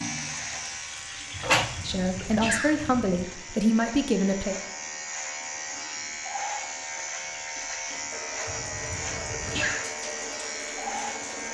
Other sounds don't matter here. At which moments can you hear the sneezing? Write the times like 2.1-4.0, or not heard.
1.3-3.2, 8.4-9.8.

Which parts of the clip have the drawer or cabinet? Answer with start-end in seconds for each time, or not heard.
1.4-2.1.